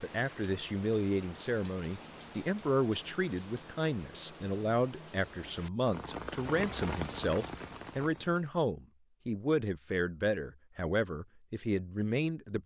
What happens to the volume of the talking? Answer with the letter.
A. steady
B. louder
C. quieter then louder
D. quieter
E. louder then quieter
A.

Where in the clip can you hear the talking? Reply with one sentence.
The talking can be heard from 0.0 to 12.6 s.